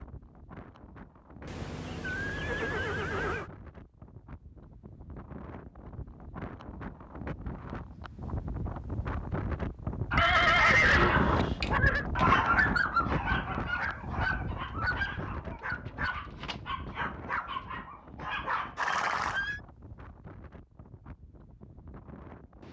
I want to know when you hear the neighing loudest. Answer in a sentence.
The volume of the neighing peaks at 11 seconds.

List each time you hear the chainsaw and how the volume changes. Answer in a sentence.
The chainsaw can't be heard in this clip.